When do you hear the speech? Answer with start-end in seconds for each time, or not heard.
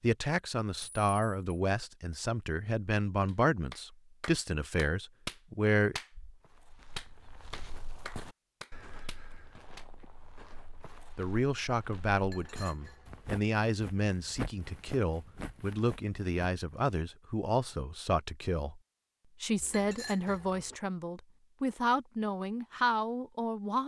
0.0-6.0, 11.2-18.8, 19.4-23.8.